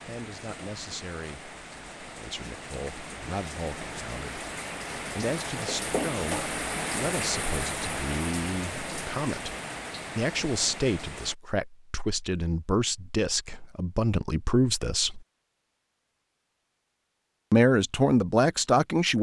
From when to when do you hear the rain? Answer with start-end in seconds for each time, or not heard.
0.0-11.3.